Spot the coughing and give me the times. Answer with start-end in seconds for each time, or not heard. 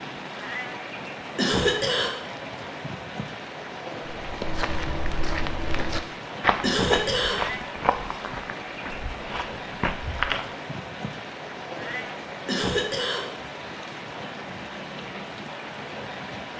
1.4-2.1, 6.6-7.4, 12.4-13.2.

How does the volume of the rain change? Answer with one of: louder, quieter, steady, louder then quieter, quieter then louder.
steady.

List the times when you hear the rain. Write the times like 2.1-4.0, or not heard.
0.0-16.5.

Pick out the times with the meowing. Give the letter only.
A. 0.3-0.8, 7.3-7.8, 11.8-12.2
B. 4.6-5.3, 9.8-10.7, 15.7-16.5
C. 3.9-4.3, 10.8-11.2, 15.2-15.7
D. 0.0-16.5
A.